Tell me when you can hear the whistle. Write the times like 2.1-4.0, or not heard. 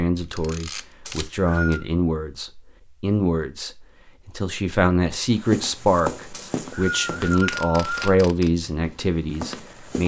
1.1-1.8, 6.3-8.0.